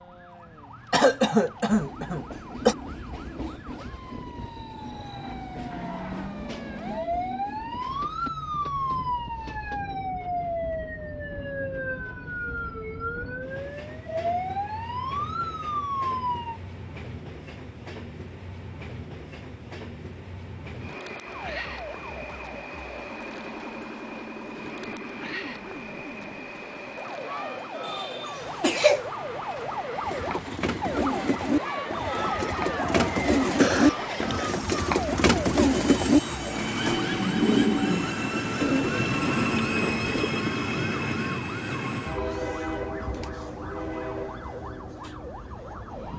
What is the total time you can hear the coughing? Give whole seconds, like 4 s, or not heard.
4 s.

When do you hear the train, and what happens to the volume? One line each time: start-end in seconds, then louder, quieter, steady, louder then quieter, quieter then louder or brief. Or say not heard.
1.7-46.1 louder.